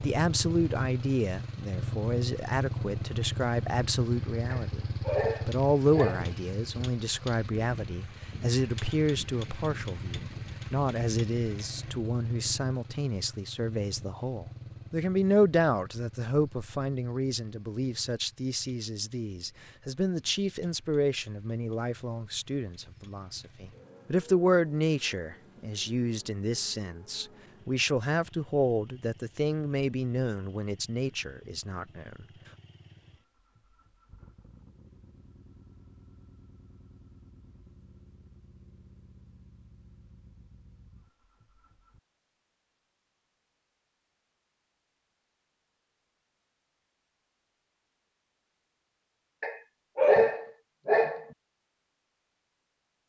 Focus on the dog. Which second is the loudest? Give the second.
50 s.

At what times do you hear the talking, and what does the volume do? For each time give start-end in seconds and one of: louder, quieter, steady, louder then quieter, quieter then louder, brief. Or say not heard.
0.0-32.2 steady.